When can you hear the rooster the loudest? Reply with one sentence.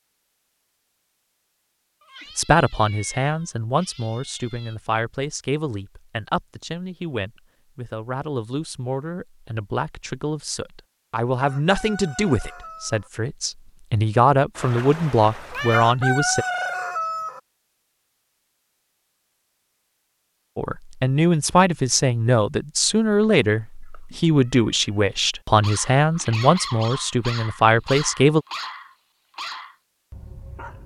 The loudest moment of the rooster is at 16 seconds.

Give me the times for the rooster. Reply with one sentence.
You can hear the rooster from 11.4 to 13.1 s and from 15.7 to 17.4 s.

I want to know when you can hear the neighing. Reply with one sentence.
The neighing can't be heard in this clip.